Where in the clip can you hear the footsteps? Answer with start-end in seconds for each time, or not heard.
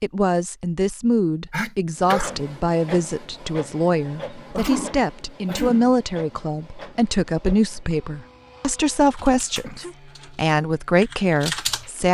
not heard.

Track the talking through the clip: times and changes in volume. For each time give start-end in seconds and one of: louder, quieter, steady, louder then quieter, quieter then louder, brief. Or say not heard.
0.0-12.0 steady.